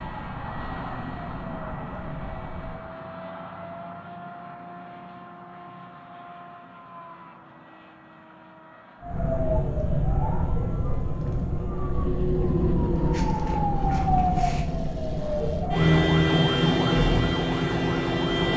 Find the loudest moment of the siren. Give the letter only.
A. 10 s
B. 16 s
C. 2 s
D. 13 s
B.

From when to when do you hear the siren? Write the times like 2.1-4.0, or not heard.
0.0-2.9, 9.0-18.5.